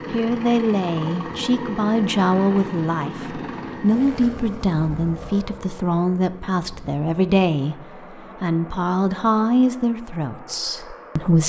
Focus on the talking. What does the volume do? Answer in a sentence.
The loudness of the talking stays about the same.